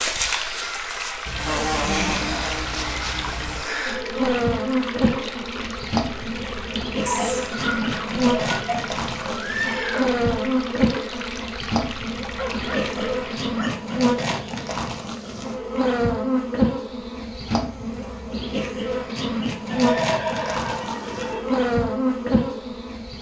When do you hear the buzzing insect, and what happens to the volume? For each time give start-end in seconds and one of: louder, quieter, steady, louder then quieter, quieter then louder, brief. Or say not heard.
0.0-23.1 steady.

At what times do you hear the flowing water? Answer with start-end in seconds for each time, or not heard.
0.0-13.5.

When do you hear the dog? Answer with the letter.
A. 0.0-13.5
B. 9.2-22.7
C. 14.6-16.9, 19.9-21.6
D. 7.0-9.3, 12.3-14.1
D.